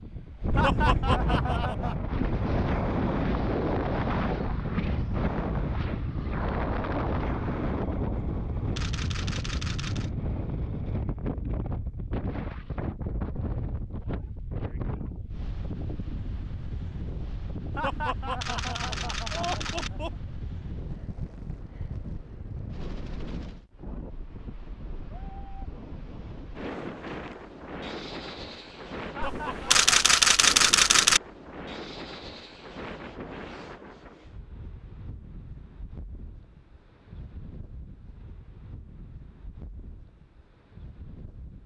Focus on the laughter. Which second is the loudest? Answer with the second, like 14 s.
1 s.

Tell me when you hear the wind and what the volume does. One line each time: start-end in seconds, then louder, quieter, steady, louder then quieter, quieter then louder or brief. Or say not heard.
0.0-41.6 quieter.